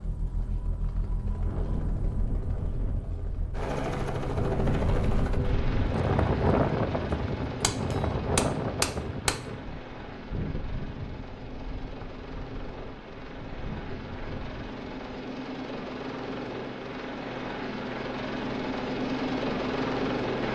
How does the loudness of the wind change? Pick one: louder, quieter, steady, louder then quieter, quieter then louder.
louder then quieter.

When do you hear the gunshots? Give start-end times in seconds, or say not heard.
7.6-9.3.